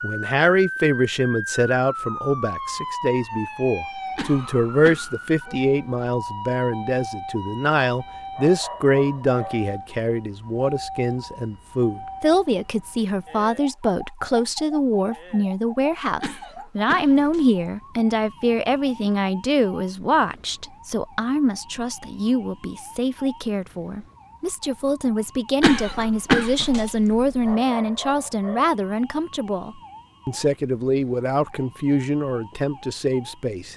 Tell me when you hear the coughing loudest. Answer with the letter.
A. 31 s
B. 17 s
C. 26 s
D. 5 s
C.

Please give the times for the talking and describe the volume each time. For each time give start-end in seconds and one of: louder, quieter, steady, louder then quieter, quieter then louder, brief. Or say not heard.
0.0-33.7 steady.